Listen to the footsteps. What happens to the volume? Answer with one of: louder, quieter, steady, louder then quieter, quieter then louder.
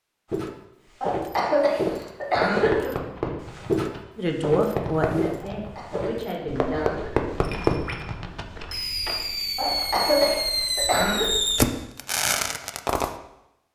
quieter.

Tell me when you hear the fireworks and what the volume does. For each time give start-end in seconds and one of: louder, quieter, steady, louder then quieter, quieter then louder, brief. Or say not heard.
2.4-13.1 louder.